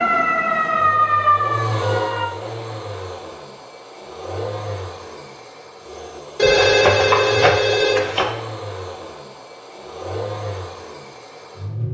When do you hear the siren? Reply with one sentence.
The siren can be heard from 0.0 to 2.3 s.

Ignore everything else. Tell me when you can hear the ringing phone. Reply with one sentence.
The ringing phone can be heard from 6.3 to 8.2 s.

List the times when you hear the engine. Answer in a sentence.
You can hear the engine from 0.0 to 11.9 s.